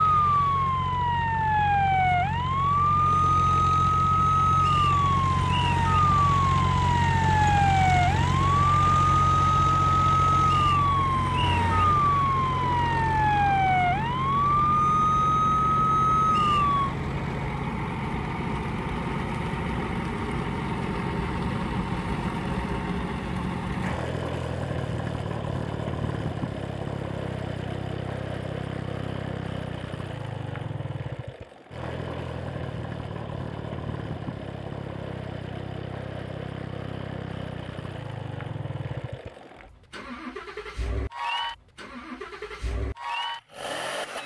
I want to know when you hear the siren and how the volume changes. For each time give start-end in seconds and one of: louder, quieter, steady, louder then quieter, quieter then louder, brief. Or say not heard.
0.0-16.9 steady.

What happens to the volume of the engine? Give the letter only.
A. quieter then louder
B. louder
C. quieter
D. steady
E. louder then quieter
C.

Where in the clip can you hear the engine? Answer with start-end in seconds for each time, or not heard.
0.0-44.2.